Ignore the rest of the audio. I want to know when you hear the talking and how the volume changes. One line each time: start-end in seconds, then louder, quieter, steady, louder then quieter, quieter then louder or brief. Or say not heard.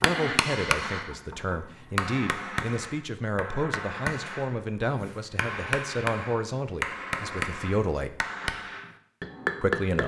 0.0-8.2 steady
9.6-10.0 brief.